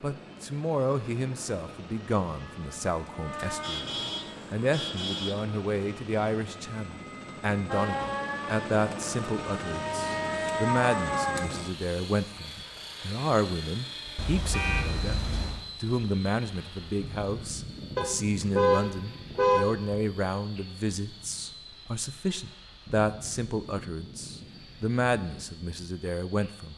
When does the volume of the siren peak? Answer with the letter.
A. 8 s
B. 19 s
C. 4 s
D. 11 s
D.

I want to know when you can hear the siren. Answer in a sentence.
The siren can be heard from 2.4 to 4.4 s and from 7.7 to 11.4 s.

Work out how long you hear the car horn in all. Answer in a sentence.
The car horn can be heard for 5 seconds in total.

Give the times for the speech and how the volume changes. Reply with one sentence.
You can hear the speech from 0.0 to 26.7 s, at a steady volume.